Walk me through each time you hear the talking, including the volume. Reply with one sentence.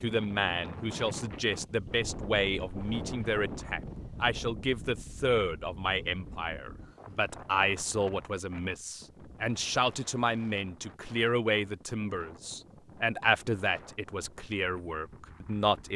The talking can be heard from 0.0 to 15.9 s, at a steady volume.